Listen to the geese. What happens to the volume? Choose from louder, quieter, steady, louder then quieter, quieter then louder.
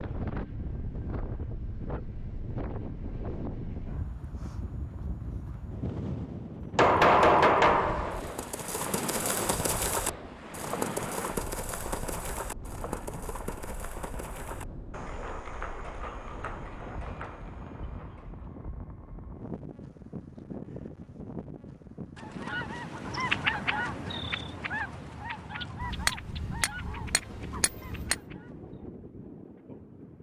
quieter.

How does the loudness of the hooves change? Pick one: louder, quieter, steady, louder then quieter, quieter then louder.
quieter.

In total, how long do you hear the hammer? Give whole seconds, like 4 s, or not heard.
4 s.